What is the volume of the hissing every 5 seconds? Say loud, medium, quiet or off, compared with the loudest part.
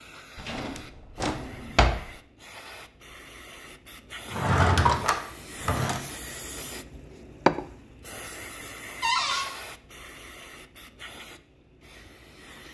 quiet, loud, quiet.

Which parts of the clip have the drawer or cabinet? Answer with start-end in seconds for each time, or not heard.
0.5-2.0, 4.3-6.0, 9.0-9.4.